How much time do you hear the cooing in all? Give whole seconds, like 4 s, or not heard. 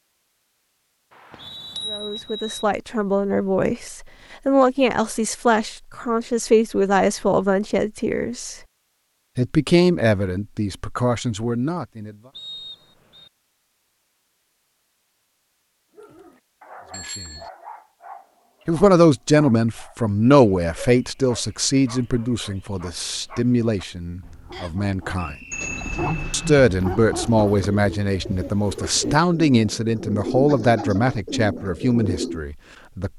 6 s.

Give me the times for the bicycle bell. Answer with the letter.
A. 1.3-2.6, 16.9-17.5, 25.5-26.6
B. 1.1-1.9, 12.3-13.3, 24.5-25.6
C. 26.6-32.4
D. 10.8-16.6
A.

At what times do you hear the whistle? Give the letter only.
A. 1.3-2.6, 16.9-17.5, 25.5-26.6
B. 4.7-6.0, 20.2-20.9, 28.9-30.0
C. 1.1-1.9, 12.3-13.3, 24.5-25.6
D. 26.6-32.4
C.